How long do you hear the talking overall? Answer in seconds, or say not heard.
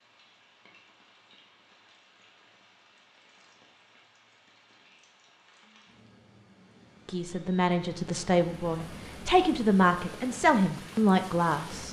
5 s.